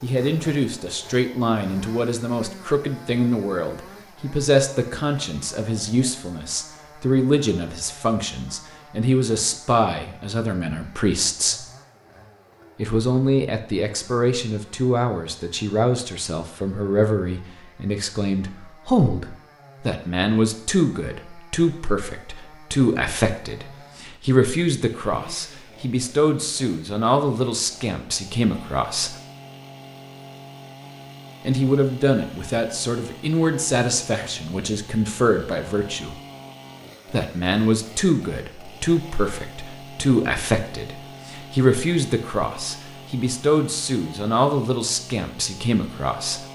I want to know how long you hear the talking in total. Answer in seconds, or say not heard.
42 s.